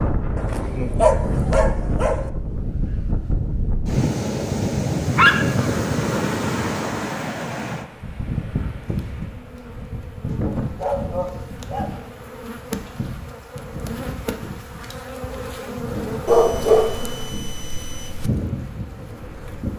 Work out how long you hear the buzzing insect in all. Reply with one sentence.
The buzzing insect can be heard for 11 seconds in total.